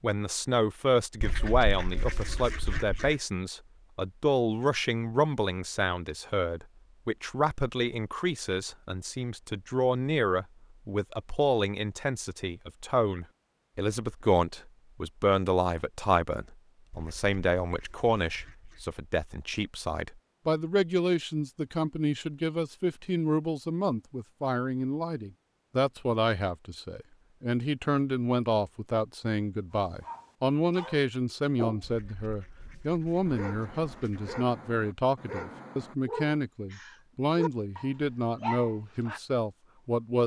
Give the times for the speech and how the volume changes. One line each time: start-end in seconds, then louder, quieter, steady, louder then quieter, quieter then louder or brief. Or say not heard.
0.0-40.2 steady.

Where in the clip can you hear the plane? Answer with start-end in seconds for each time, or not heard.
not heard.